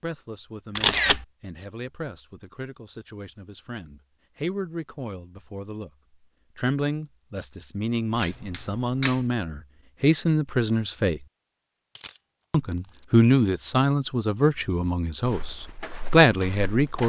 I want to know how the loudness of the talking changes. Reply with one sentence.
The volume of the talking goes up.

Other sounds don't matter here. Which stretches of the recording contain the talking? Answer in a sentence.
The talking can be heard from 0.0 to 5.9 s, from 6.5 to 11.2 s and from 12.5 to 17.0 s.